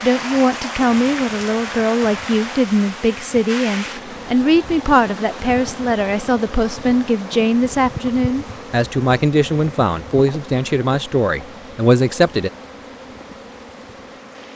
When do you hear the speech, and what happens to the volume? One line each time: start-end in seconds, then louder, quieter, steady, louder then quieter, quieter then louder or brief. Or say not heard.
0.0-12.5 steady.